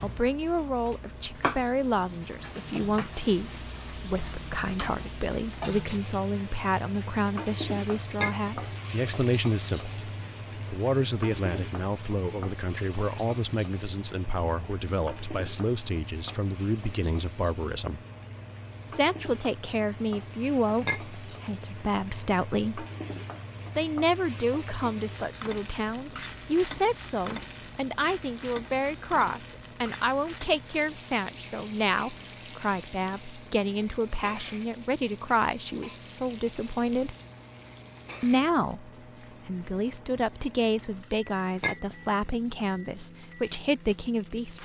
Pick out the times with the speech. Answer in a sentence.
The speech can be heard from 0.0 to 9.9 s, from 10.7 to 18.0 s, from 18.9 to 22.9 s, from 23.8 to 37.1 s and from 38.2 to 44.6 s.